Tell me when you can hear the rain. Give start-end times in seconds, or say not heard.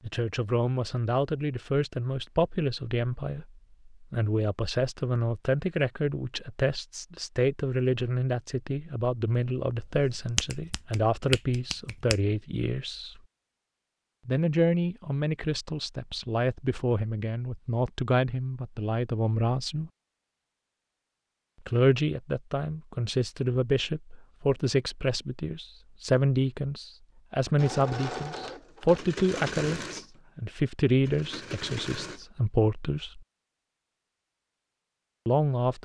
not heard.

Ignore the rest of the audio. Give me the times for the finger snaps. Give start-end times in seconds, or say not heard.
9.8-12.2.